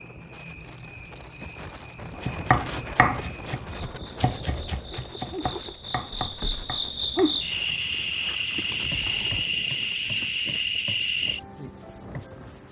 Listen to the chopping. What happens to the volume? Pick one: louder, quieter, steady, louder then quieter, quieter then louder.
quieter.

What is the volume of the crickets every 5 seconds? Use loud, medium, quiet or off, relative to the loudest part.
quiet, loud, loud.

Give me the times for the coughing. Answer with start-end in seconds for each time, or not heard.
not heard.